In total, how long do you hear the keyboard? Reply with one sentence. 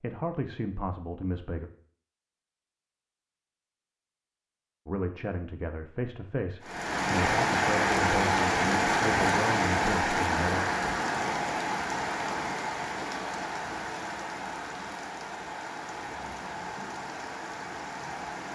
The keyboard can't be heard in this clip.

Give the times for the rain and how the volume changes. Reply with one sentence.
You can hear the rain from 6.6 to 18.4 s, getting quieter.